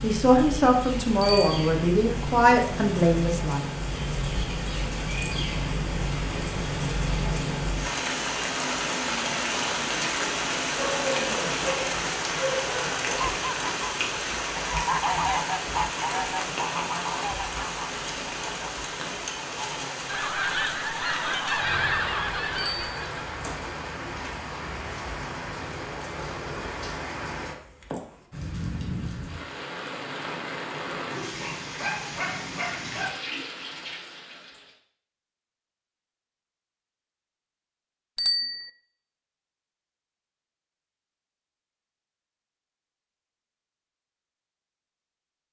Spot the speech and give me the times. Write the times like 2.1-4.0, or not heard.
0.0-3.6.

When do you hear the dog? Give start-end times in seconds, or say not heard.
10.7-13.4, 31.4-33.1.